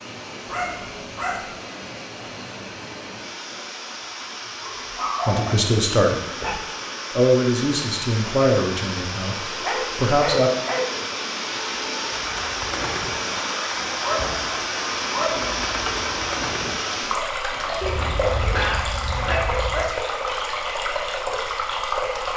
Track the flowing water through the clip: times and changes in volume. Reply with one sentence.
The flowing water can be heard from 0.0 to 22.3 s, getting louder.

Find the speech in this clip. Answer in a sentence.
The speech can be heard from 5.2 to 6.2 s and from 7.2 to 10.5 s.